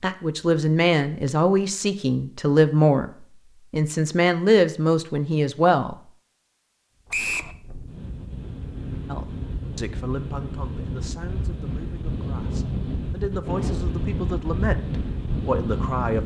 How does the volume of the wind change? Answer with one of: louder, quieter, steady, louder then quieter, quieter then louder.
louder.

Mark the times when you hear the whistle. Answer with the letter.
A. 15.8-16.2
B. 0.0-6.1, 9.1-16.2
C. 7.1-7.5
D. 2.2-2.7
C.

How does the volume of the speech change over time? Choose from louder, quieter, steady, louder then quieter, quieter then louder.
quieter then louder.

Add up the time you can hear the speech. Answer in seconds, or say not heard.
13 s.